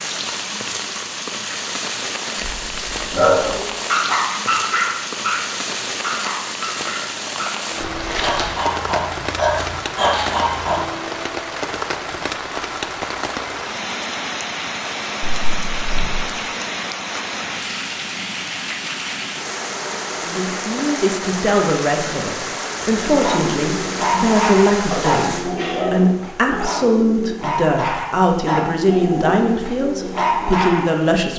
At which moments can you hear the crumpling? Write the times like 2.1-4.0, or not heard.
7.8-8.6.